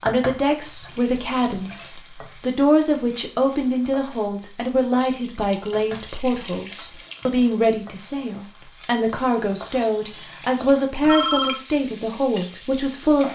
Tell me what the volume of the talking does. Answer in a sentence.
The volume of the talking stays about the same.